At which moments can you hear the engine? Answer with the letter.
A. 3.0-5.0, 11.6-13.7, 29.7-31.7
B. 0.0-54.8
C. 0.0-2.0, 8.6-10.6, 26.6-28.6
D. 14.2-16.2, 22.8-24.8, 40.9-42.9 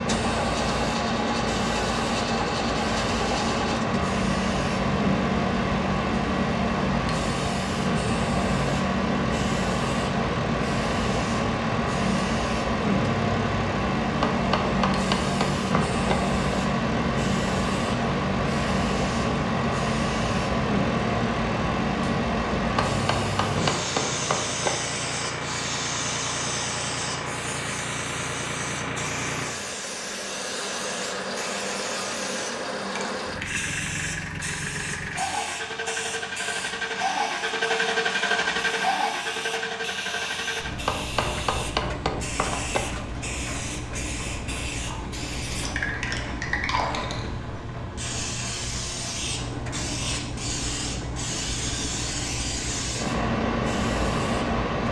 B.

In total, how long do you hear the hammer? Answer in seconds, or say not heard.
6 s.